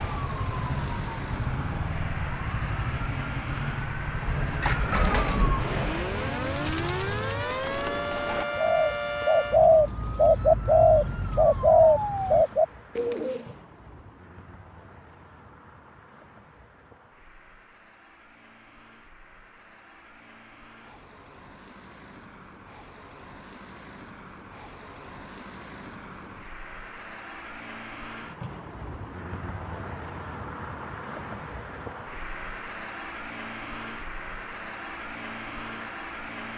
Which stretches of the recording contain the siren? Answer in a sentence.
You can hear the siren from 0.0 to 12.4 s.